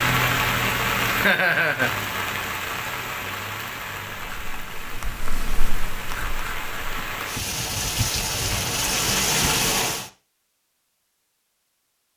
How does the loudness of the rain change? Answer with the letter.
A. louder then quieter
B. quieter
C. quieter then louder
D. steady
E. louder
C.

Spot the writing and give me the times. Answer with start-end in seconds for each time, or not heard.
4.3-7.0.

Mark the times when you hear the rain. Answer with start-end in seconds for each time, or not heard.
0.0-10.1.